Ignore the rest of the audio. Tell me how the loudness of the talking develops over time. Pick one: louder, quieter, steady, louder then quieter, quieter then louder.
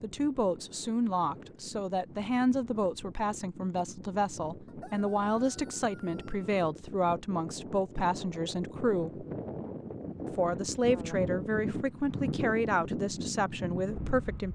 steady.